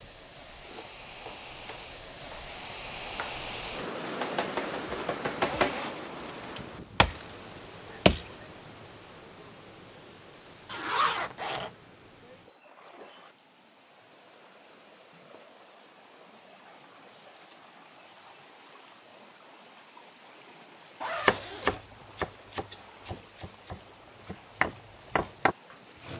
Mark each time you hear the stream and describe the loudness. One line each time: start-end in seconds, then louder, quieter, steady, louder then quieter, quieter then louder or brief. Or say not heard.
0.0-26.1 quieter.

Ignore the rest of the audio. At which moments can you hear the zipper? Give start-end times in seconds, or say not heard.
4.9-6.5, 10.7-11.7, 21.0-21.9.